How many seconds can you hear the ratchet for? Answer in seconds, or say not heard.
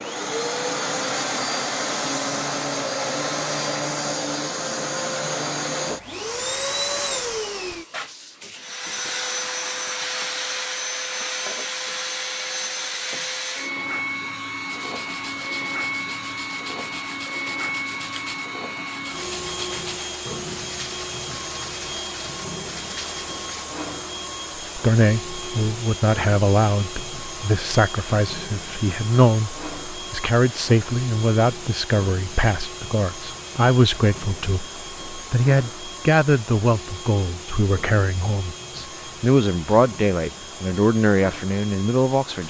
not heard.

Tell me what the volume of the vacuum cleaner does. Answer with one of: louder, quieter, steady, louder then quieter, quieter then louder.
quieter.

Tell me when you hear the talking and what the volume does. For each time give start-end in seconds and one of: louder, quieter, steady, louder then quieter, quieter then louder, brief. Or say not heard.
24.8-42.4 steady.